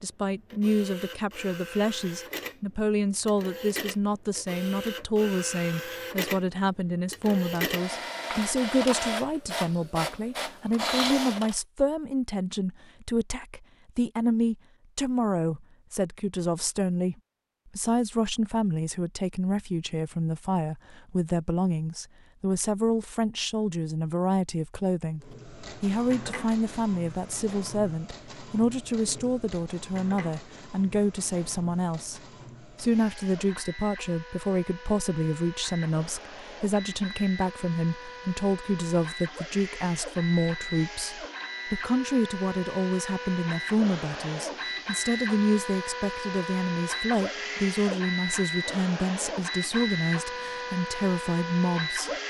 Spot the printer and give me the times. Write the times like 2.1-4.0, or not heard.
0.0-11.6, 25.2-52.2.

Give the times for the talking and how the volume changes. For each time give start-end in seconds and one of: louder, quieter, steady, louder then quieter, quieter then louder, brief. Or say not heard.
0.0-17.1 steady
17.8-52.1 steady.